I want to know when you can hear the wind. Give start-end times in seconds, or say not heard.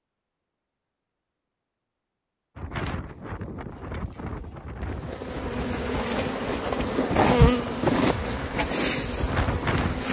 2.5-10.0.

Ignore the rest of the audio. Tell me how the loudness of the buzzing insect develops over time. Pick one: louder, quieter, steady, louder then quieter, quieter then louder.
louder then quieter.